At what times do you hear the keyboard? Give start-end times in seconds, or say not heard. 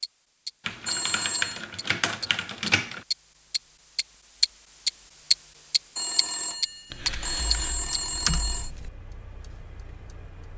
0.7-3.0, 6.9-8.9.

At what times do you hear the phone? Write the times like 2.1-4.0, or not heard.
0.8-1.6, 6.0-8.7.